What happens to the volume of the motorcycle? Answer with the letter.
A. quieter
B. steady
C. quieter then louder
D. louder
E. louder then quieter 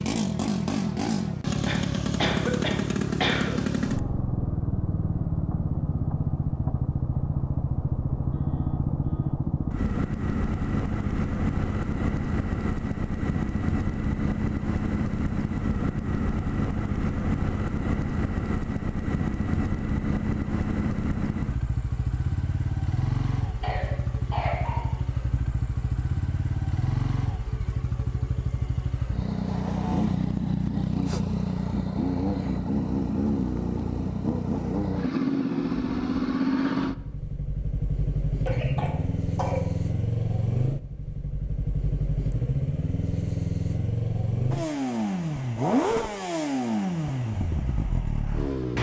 B.